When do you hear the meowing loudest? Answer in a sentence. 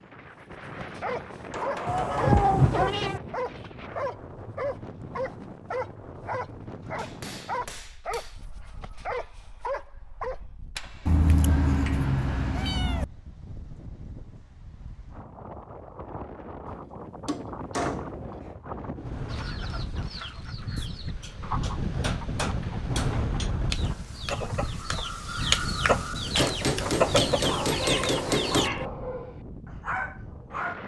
The loudest moment of the meowing is at 2 seconds.